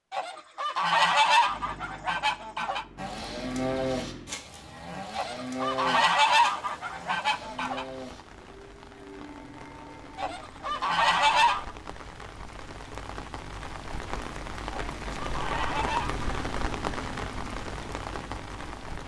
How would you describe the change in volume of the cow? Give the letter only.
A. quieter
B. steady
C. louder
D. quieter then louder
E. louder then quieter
A.